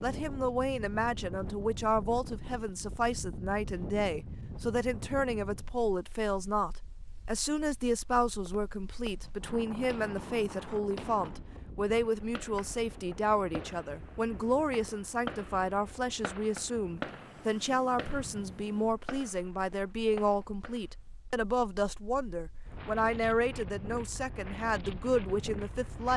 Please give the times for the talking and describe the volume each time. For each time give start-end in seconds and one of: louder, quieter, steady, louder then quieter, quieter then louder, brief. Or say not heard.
0.0-26.1 steady.